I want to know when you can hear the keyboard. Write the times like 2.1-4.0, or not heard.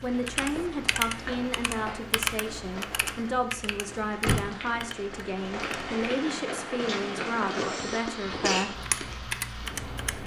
0.0-6.0, 8.8-10.2.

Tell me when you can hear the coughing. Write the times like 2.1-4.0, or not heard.
7.5-8.7.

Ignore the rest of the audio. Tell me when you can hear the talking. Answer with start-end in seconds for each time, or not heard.
0.0-8.8.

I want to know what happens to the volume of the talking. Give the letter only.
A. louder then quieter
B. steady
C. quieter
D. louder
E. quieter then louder
B.